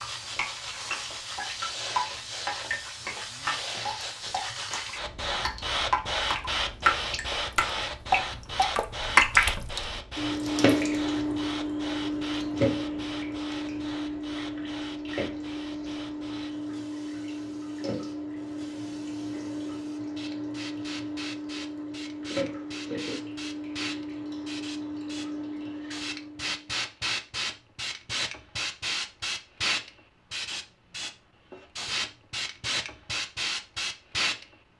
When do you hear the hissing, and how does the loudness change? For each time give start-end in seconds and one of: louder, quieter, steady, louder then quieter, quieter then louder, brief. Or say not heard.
0.0-34.5 quieter then louder.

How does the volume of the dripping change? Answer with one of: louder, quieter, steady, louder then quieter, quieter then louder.
louder then quieter.